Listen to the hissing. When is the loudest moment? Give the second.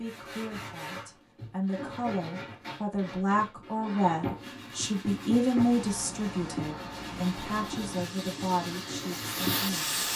10 s.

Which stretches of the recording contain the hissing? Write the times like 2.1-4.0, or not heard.
5.5-10.1.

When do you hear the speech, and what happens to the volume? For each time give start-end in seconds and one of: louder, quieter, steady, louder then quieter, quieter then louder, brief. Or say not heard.
0.0-10.1 louder then quieter.